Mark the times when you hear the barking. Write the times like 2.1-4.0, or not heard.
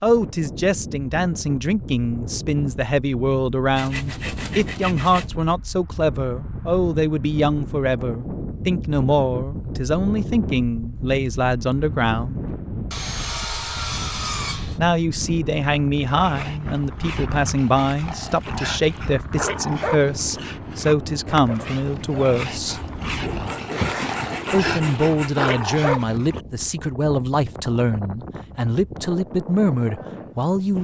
16.1-26.4.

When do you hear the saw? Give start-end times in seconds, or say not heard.
3.8-5.3, 12.9-14.8, 22.6-25.6.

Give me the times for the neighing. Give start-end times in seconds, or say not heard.
23.7-24.4.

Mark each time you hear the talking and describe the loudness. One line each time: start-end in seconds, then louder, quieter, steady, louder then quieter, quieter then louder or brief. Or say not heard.
0.0-12.4 steady
14.8-22.8 steady
24.5-30.8 steady.